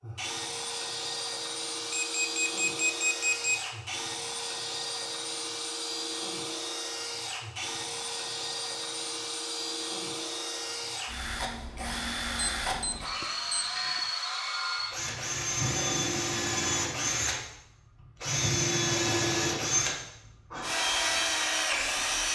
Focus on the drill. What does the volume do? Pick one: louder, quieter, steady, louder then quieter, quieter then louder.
louder.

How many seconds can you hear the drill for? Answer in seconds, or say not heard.
22 s.